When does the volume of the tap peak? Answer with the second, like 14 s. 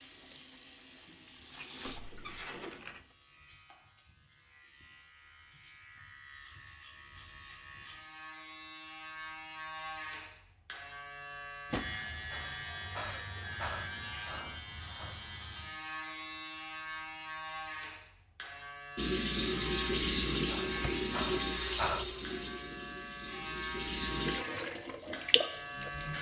20 s.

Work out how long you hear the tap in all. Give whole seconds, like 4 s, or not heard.
10 s.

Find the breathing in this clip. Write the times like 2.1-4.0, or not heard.
12.2-15.2, 20.4-22.3.